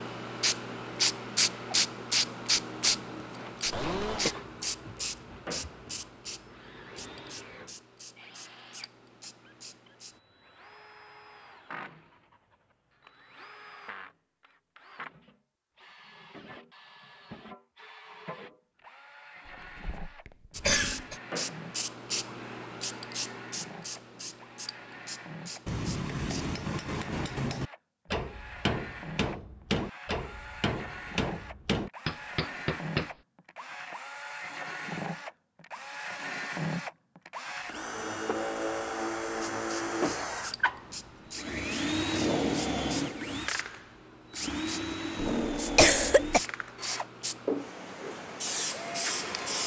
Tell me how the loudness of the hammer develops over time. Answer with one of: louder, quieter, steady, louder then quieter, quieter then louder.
steady.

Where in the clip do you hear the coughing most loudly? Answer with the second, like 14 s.
46 s.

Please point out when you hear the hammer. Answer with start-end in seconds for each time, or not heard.
25.6-33.1.